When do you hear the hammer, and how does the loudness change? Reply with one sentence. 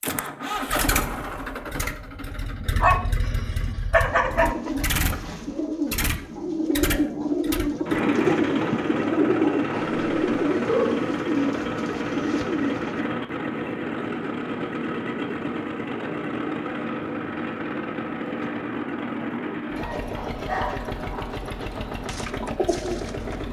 You can't hear the hammer here.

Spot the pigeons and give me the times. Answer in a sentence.
You can hear the pigeons from 4.0 to 13.1 s and from 22.1 to 23.4 s.